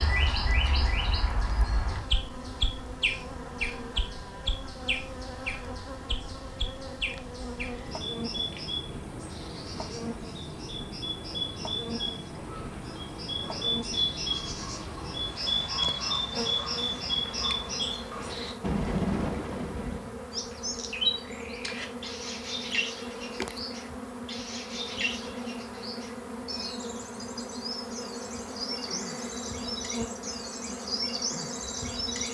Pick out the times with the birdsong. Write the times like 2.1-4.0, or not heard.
0.0-32.2.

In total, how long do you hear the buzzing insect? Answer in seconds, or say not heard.
32 s.